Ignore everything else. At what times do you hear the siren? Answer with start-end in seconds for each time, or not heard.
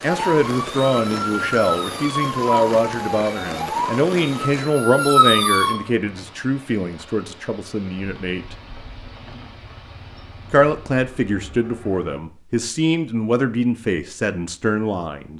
0.0-5.8.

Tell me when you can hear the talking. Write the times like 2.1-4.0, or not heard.
0.0-8.6, 10.5-15.3.